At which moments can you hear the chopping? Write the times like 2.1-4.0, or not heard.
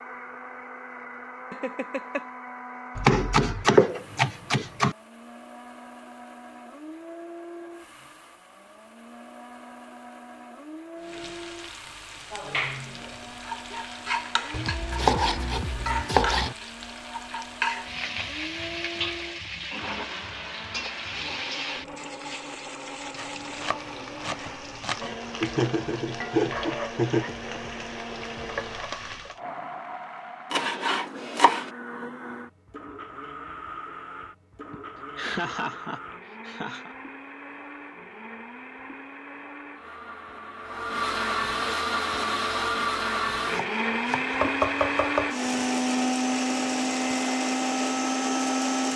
3.0-5.0, 14.5-16.6, 23.1-25.1, 30.5-31.7, 43.5-45.3.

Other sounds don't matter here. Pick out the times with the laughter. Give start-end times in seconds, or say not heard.
1.5-2.2, 25.4-27.4, 34.7-37.0.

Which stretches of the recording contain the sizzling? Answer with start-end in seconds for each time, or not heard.
11.0-29.4.